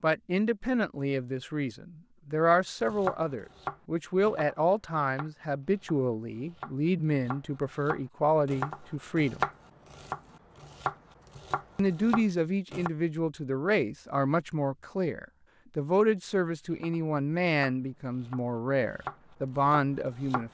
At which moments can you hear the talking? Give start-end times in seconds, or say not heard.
0.0-9.4, 11.8-20.4.